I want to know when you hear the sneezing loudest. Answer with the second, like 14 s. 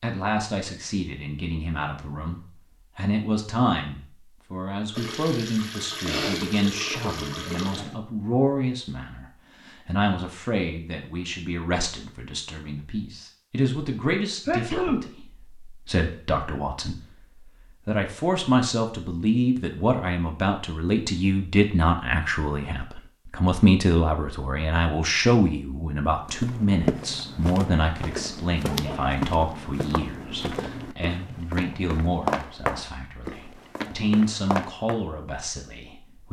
15 s.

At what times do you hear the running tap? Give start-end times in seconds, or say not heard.
4.9-8.0.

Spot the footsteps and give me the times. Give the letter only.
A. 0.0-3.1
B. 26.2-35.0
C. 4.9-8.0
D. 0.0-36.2
B.